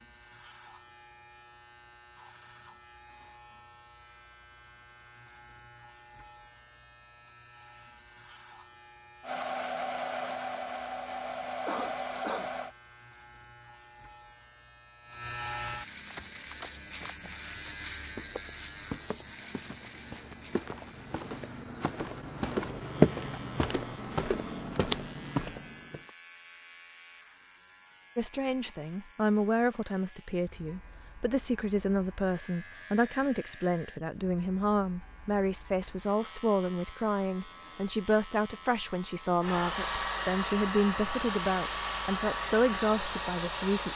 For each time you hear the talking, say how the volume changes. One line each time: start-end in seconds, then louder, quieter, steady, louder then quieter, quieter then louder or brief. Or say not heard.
28.1-43.9 steady.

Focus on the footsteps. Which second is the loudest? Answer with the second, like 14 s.
23 s.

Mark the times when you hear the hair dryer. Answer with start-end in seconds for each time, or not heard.
9.2-12.8, 39.4-43.9.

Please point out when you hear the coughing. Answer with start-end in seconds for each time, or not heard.
11.7-12.5.